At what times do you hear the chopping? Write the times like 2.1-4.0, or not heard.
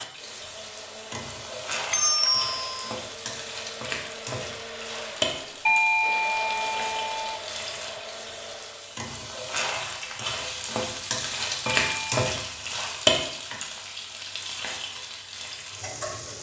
not heard.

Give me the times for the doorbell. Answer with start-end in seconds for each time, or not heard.
1.9-3.0, 5.7-7.4, 11.7-12.2.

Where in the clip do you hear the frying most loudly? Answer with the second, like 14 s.
13 s.